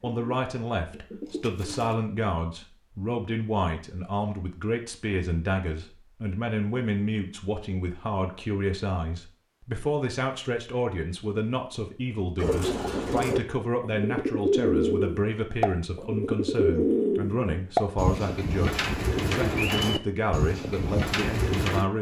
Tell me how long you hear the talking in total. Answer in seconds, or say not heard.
22 s.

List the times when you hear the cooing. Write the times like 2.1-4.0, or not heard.
0.1-2.0, 12.3-21.9.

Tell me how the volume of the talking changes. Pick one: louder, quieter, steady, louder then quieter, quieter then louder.
steady.